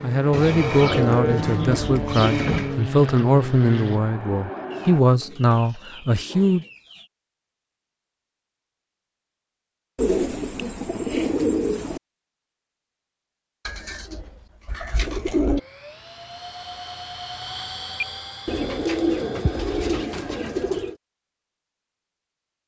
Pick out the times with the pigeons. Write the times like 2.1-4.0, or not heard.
0.3-2.8, 4.7-7.1, 9.9-12.0, 13.7-15.6, 18.4-20.9.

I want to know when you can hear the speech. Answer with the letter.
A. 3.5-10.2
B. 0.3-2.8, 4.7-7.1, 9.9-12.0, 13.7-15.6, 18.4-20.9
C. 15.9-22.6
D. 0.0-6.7
D.